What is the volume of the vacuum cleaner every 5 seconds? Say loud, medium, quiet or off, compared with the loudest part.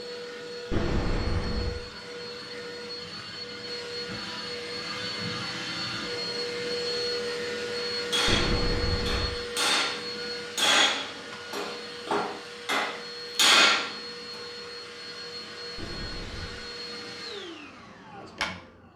medium, loud, medium, medium.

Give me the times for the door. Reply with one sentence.
You can hear the door from 0.7 to 1.8 s, from 8.2 to 9.3 s and from 15.8 to 16.6 s.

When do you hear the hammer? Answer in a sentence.
The hammer can be heard from 8.1 to 13.9 s.